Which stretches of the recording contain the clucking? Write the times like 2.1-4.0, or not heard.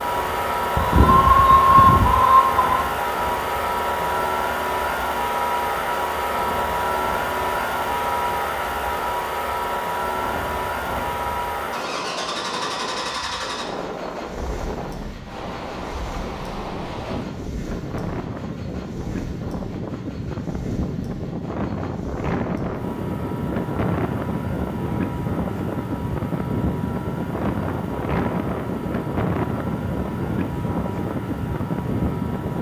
0.8-2.8.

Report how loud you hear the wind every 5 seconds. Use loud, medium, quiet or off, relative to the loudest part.
quiet, quiet, medium, medium, loud, loud, loud.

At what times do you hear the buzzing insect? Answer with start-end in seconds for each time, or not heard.
not heard.